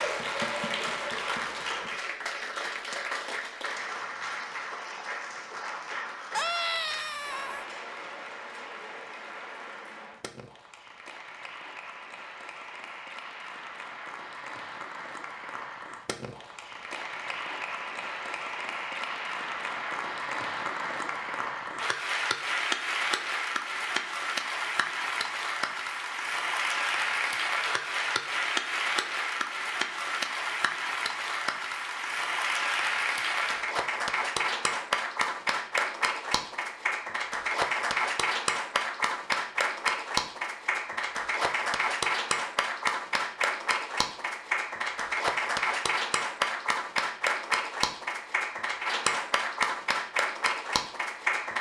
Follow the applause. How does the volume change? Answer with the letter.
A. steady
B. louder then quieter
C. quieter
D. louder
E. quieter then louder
D.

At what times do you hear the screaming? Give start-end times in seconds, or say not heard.
6.3-7.7.